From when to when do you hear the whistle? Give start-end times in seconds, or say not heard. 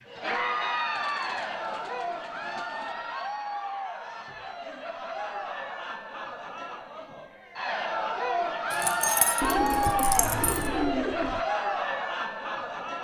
not heard.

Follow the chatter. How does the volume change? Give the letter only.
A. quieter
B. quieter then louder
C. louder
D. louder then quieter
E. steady
B.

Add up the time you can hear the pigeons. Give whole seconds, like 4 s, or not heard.
4 s.